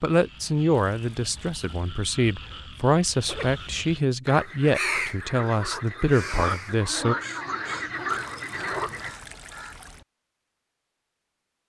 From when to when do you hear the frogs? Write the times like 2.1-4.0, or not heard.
0.1-9.1.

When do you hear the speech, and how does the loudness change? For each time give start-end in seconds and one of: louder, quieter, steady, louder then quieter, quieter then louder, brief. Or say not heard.
0.0-7.2 steady.